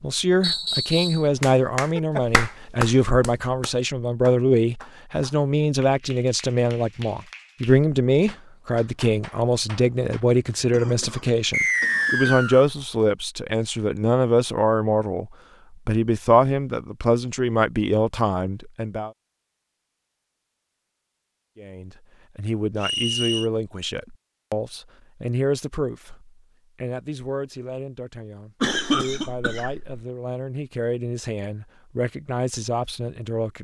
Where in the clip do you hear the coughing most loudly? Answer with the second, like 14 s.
29 s.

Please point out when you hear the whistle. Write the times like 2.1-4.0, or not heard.
0.4-1.2, 11.5-12.7, 22.8-23.5.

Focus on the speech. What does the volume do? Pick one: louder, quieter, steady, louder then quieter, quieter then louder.
quieter.